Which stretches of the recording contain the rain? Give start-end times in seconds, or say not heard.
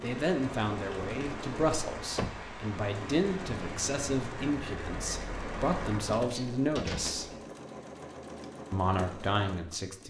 0.0-6.2.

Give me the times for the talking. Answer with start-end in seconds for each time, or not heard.
0.0-7.3, 8.7-10.0.